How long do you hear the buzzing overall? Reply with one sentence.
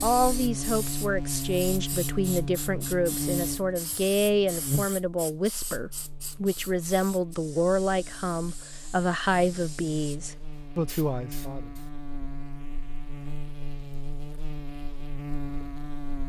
You can hear the buzzing for 16 seconds altogether.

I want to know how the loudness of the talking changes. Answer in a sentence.
The loudness of the talking stays about the same.